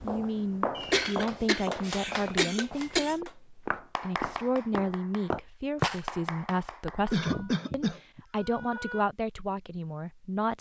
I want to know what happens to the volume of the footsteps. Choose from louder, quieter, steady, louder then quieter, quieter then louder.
quieter then louder.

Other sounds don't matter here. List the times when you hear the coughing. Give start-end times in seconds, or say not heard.
0.8-3.1, 7.1-9.1.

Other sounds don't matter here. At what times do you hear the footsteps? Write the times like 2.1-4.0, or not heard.
0.0-6.0.